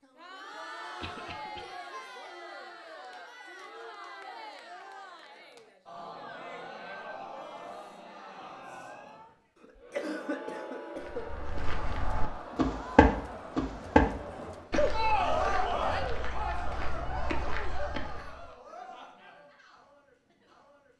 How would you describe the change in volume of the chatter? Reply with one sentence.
The loudness of the chatter goes up, then down.